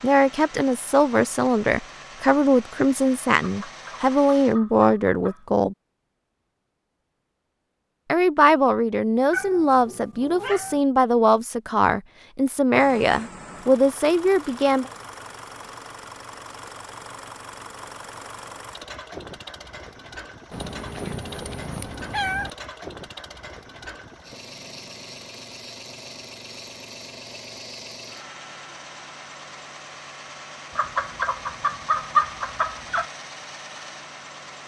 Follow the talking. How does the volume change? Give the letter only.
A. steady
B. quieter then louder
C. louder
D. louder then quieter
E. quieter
A.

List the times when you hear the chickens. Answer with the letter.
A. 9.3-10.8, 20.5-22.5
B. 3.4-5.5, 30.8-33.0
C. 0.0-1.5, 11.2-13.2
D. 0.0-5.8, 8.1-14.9
B.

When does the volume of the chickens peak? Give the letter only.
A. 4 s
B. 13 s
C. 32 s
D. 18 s
C.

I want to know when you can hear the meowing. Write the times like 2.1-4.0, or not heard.
9.3-10.8, 20.5-22.5.